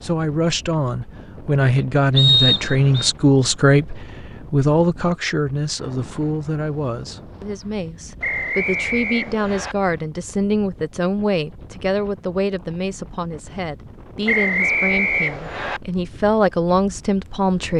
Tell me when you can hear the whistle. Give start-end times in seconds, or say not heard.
2.1-3.1, 8.2-9.8, 14.2-15.8.